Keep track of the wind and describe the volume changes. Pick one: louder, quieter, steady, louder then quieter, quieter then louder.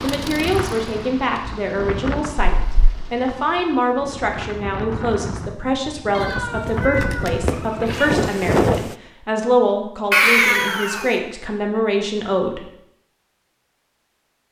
quieter then louder.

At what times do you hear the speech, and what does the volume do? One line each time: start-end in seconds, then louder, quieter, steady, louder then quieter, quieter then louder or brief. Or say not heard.
0.0-12.7 steady.